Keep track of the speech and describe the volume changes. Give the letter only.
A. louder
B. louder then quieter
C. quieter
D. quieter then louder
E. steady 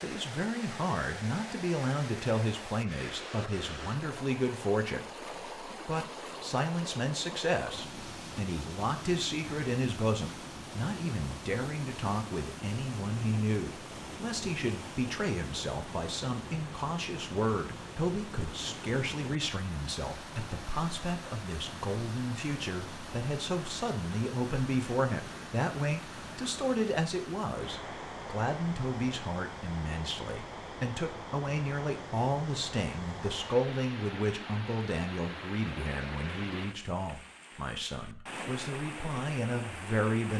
E.